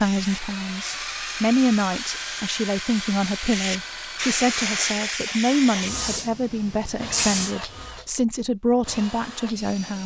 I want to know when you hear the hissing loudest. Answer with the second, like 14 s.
5 s.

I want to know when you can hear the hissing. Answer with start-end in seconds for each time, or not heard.
0.0-7.5.